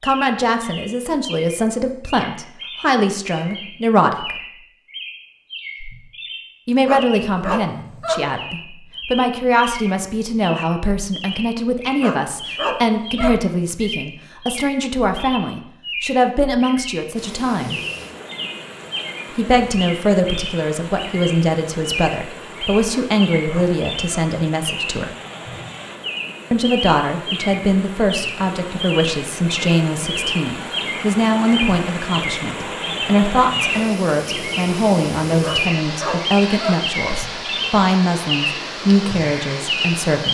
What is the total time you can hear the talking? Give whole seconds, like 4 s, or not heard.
35 s.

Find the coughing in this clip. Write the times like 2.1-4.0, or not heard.
not heard.